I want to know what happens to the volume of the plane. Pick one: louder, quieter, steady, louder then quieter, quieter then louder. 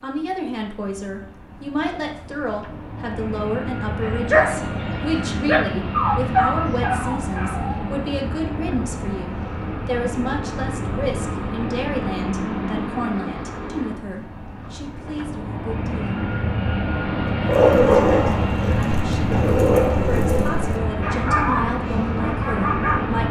louder.